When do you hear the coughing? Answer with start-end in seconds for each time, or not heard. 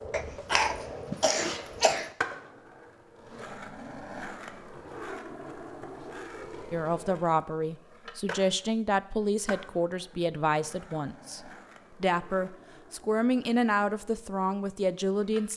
0.1-2.1.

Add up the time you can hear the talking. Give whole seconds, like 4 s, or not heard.
8 s.